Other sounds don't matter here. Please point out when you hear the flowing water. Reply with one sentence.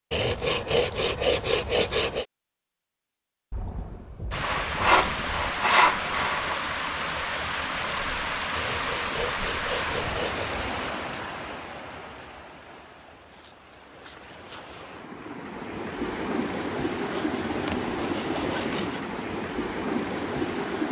You can hear the flowing water from 4.3 to 20.8 s.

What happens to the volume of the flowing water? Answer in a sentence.
The loudness of the flowing water goes down, then up.